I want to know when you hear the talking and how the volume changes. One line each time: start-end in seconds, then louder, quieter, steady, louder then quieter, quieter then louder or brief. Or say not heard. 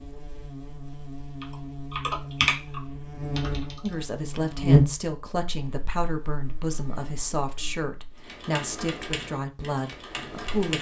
3.8-10.7 steady.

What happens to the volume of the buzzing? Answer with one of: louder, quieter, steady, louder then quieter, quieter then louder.
louder then quieter.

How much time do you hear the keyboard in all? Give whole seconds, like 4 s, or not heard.
5 s.